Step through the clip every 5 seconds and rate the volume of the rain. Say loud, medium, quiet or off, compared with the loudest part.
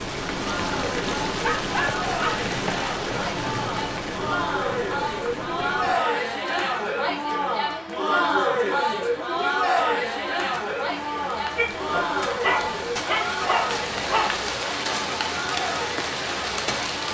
loud, medium, loud, loud.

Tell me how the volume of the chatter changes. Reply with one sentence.
The loudness of the chatter goes up, then down.